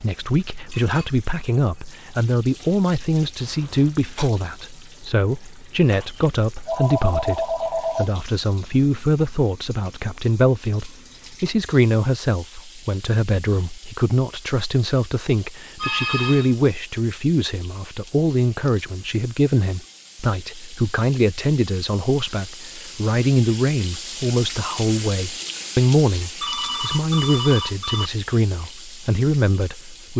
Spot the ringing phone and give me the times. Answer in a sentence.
The ringing phone can be heard from 5.9 to 8.1 s, from 15.8 to 16.6 s and from 26.4 to 28.1 s.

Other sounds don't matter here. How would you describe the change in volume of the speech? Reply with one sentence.
The loudness of the speech stays about the same.